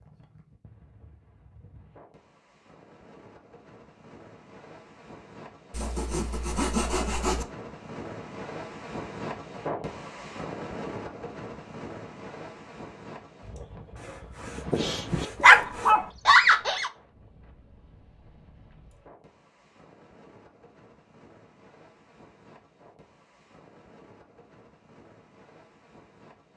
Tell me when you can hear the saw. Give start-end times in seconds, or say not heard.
5.7-7.5, 13.9-15.9.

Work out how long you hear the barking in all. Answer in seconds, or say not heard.
2 s.